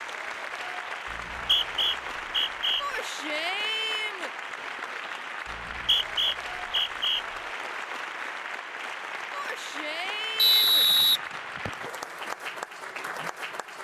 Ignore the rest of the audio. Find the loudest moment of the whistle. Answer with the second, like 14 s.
11 s.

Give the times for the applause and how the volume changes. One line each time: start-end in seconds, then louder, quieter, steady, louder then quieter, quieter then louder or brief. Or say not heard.
0.0-13.7 steady.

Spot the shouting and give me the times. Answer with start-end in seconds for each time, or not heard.
2.8-4.3, 9.3-10.8.